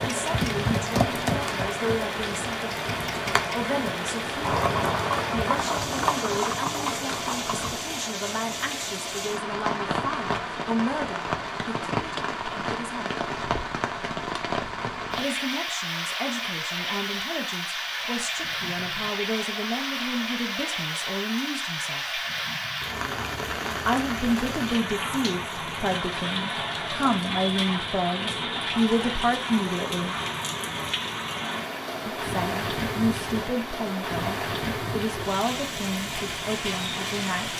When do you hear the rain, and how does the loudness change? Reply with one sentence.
You can hear the rain from 0.0 to 37.5 s, at a steady volume.